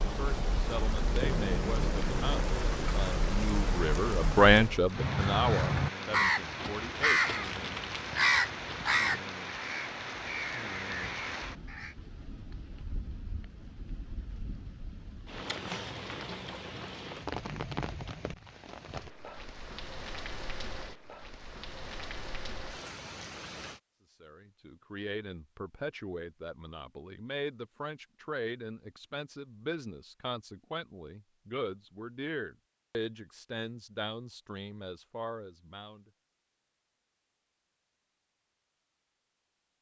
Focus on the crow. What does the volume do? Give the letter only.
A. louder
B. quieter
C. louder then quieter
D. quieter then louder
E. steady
B.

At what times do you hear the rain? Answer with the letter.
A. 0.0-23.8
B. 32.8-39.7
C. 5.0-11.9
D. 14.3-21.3
A.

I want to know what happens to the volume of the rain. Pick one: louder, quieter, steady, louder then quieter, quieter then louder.
quieter.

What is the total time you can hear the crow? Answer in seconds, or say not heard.
7 s.